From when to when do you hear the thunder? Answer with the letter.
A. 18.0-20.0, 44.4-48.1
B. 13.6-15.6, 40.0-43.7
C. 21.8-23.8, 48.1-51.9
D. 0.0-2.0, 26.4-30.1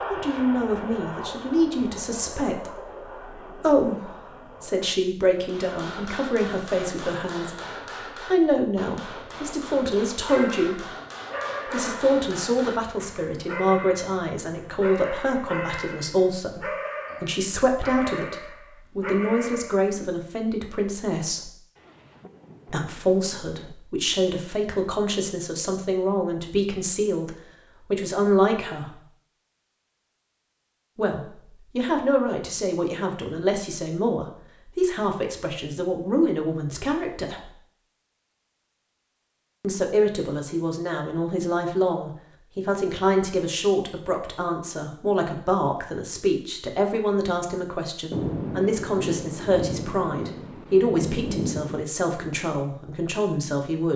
C.